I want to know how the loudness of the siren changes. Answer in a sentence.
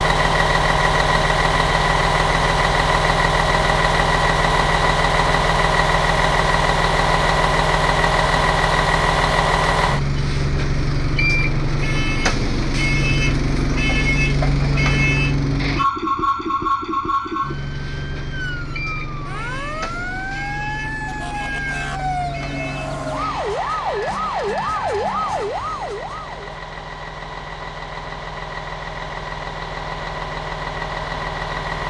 The volume of the siren goes up.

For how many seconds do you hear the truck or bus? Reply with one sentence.
You can hear the truck or bus for 32 seconds altogether.